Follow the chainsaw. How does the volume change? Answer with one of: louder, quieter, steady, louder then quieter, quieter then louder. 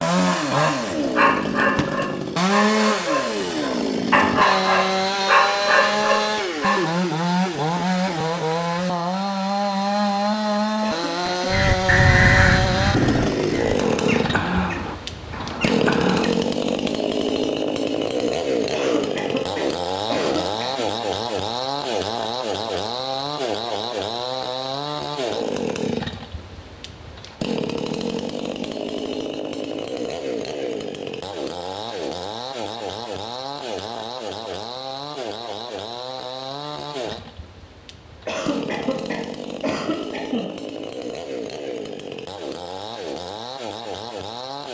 quieter.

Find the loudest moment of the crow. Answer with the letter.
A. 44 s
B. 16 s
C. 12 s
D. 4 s
C.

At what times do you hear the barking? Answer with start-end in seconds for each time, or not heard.
0.2-6.8.